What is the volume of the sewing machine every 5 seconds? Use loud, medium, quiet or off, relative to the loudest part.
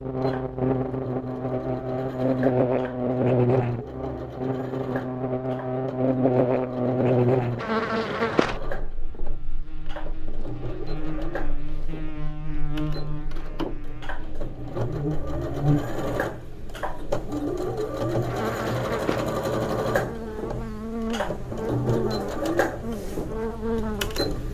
medium, medium, medium, loud, loud.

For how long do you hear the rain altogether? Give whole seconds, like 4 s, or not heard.
not heard.